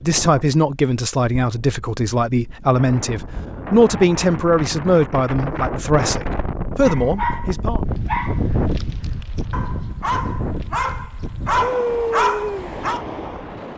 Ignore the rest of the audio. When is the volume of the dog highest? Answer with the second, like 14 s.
12 s.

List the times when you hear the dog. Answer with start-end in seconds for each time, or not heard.
6.8-13.0.